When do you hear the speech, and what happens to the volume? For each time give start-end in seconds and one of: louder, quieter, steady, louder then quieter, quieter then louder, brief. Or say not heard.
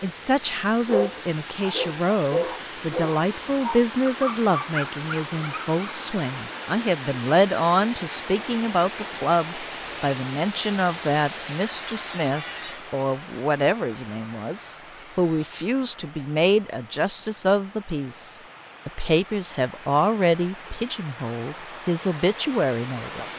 0.0-23.3 steady.